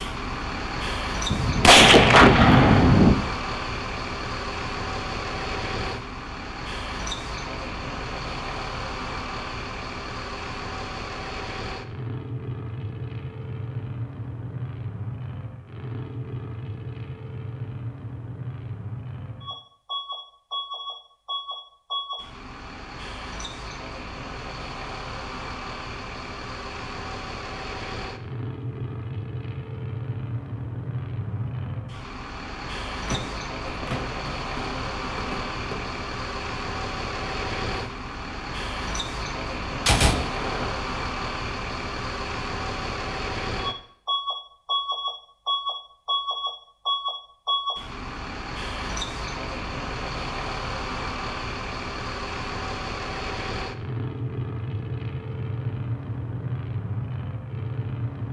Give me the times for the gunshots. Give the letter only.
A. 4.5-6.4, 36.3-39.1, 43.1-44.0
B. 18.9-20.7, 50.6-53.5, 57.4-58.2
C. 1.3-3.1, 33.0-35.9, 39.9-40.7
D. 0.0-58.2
C.